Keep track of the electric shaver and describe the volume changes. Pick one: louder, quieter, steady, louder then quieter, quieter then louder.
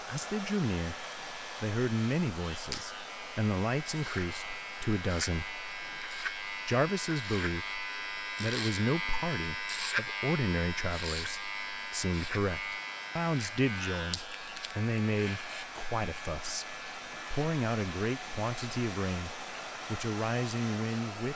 louder then quieter.